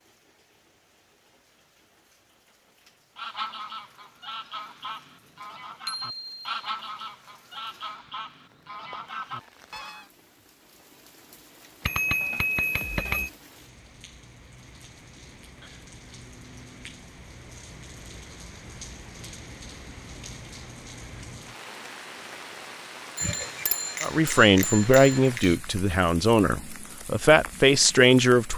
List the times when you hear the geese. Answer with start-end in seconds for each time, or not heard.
3.1-10.1.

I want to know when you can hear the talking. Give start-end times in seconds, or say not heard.
24.0-28.5.